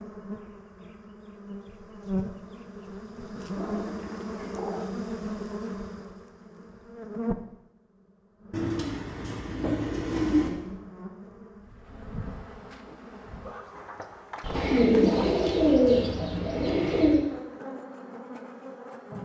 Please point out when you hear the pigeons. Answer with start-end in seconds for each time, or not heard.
3.5-4.8, 8.5-10.5, 14.4-17.2.